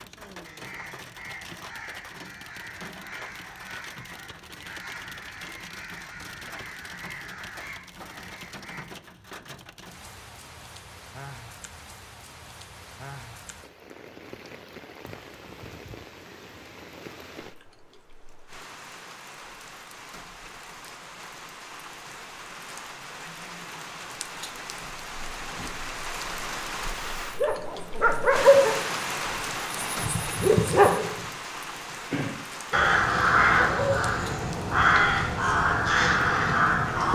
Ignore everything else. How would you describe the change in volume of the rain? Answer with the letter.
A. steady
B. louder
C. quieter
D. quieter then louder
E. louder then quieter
B.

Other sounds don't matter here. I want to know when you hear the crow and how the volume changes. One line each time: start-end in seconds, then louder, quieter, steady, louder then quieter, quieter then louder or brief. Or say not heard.
0.4-8.8 steady
32.7-37.1 quieter then louder.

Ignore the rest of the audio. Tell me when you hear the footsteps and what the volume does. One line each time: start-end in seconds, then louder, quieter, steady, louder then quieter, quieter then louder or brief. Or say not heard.
not heard.